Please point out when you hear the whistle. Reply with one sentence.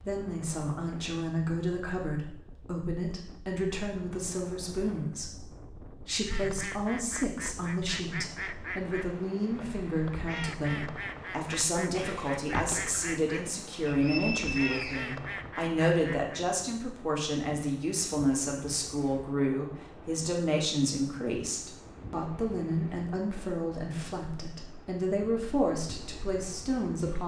The whistle can be heard from 13.8 to 15.2 s.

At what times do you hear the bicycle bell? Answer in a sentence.
You can hear the bicycle bell from 11.9 to 12.9 s.